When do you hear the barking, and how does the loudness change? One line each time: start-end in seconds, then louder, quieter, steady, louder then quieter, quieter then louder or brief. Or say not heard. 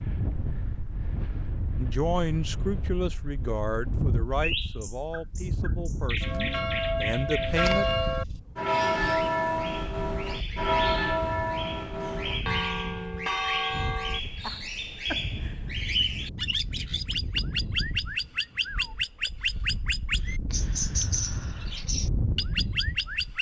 not heard.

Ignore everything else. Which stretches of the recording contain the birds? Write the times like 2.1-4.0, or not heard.
4.4-23.3.